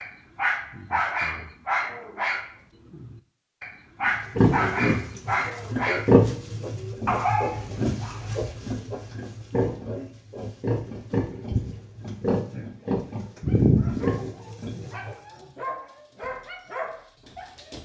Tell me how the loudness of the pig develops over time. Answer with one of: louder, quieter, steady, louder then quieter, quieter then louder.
quieter then louder.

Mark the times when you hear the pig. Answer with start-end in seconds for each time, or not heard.
4.3-15.2.